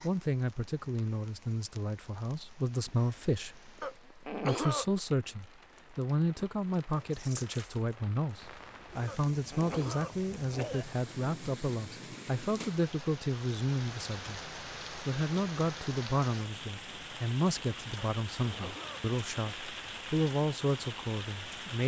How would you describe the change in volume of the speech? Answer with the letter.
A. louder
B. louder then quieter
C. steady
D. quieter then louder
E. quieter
C.